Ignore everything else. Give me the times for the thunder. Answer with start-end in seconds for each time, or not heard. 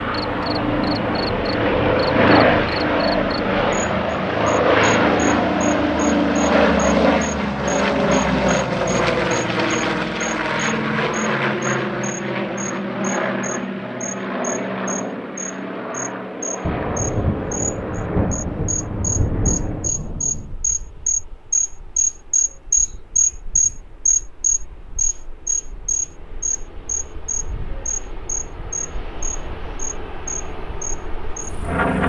16.6-20.6.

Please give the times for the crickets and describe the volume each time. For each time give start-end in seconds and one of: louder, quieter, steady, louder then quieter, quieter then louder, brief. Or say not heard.
0.0-32.0 louder then quieter.